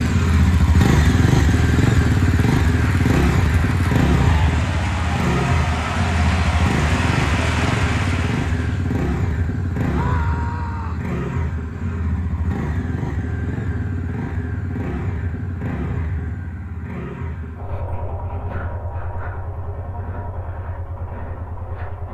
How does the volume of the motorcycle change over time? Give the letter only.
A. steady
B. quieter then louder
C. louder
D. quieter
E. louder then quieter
D.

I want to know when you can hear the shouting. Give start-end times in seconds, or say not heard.
9.8-11.1.